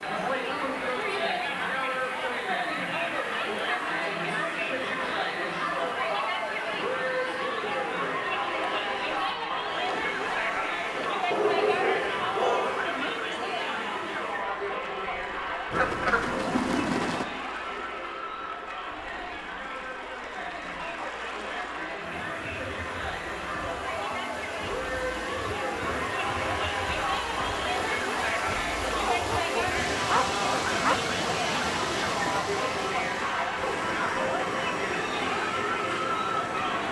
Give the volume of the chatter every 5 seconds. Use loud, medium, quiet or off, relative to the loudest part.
loud, loud, loud, medium, medium, loud, loud, loud.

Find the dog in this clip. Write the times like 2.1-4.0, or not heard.
11.3-12.9, 29.0-30.9.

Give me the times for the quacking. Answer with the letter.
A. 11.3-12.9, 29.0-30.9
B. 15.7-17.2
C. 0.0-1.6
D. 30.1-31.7
B.